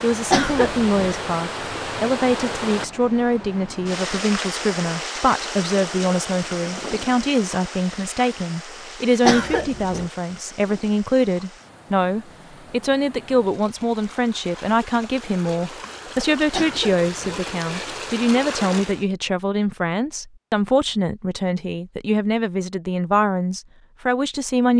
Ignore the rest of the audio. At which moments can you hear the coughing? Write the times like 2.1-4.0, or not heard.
0.3-1.1, 9.2-10.1, 16.5-17.4.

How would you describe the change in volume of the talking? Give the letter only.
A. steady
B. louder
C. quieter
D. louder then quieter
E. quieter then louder
A.